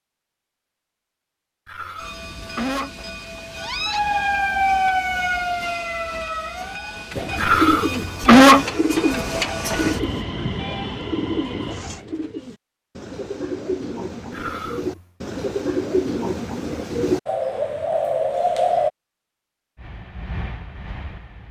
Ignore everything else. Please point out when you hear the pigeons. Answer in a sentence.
The pigeons can be heard from 7.1 to 18.9 s.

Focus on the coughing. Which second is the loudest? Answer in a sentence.
The loudest moment of the coughing is at 8 seconds.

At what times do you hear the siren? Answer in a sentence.
You can hear the siren from 3.5 to 7.0 s.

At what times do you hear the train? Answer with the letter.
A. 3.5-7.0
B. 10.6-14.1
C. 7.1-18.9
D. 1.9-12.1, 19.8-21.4
D.